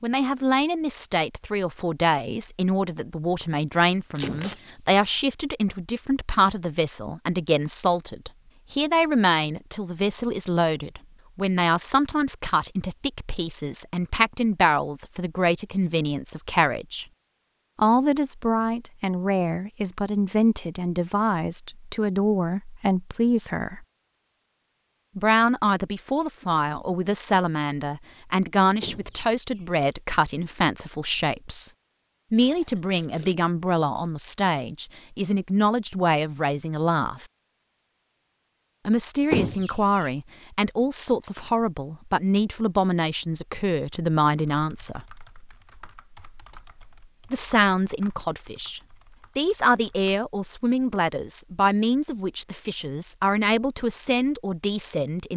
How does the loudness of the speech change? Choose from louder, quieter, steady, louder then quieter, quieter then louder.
steady.